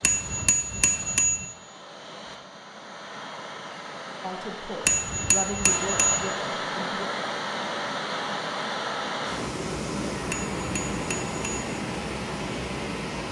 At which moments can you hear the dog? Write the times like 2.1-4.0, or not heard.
not heard.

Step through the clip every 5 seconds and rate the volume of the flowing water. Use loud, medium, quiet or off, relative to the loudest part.
medium, loud, loud.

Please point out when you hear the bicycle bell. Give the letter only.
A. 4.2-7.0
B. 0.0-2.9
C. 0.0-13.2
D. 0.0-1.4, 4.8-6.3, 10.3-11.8
D.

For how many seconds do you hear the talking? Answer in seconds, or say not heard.
3 s.